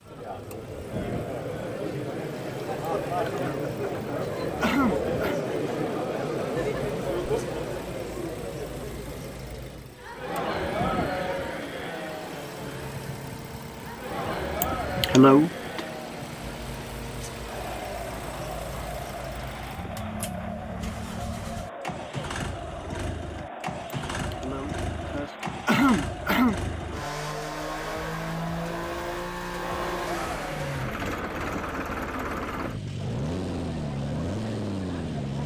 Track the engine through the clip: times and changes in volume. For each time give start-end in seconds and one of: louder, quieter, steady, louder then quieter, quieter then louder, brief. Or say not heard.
0.0-35.4 louder.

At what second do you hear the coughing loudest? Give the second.
15 s.